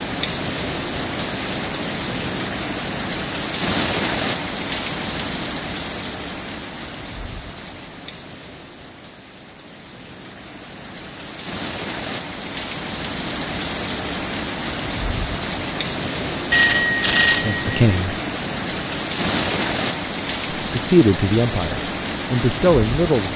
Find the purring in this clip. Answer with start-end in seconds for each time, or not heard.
not heard.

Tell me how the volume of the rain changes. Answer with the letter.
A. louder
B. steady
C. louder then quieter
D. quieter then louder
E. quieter
D.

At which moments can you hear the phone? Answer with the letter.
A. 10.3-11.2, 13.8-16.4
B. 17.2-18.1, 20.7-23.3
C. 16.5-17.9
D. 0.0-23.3
C.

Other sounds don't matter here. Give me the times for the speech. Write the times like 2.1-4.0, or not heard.
17.2-18.1, 20.7-23.3.